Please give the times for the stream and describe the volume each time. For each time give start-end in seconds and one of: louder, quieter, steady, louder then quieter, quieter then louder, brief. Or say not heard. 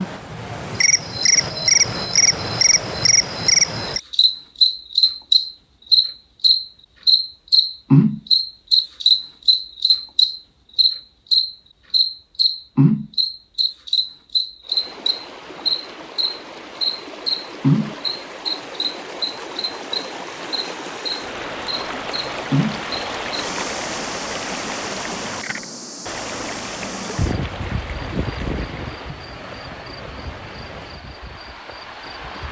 14.6-32.4 louder then quieter.